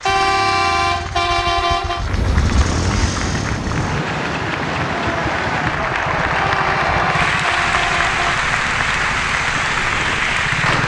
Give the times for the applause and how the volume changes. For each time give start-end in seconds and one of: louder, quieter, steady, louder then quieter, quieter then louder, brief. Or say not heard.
0.0-10.8 louder.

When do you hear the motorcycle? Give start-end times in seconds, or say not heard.
0.0-10.8.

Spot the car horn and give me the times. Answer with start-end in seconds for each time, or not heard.
0.1-2.0, 6.3-8.2.